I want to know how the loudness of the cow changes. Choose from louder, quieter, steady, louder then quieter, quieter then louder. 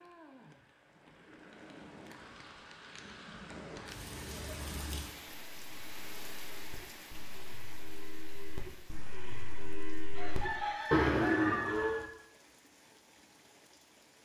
louder.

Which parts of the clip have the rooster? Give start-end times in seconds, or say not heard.
10.2-12.1.